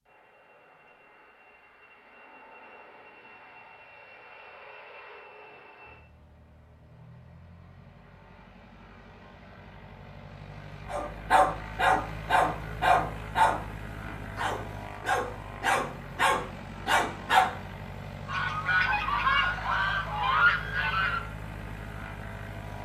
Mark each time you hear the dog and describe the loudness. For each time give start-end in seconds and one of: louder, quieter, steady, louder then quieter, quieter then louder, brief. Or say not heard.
10.9-17.5 quieter then louder.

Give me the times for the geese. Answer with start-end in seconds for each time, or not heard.
18.2-21.2.